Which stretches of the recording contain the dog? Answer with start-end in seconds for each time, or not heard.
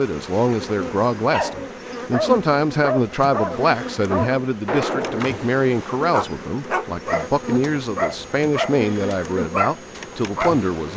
1.3-10.7.